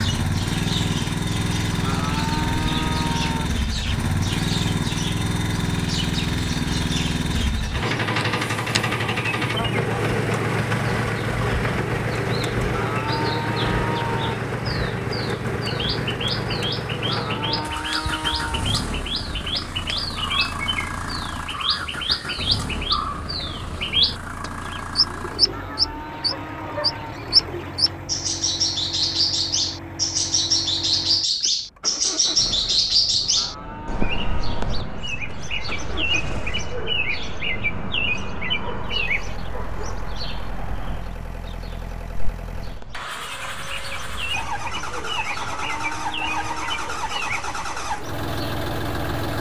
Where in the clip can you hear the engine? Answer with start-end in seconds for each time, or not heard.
0.0-49.3.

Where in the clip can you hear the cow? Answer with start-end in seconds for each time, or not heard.
1.7-3.5, 12.6-14.3, 17.0-18.7, 25.4-27.1, 33.2-34.7, 45.2-47.0.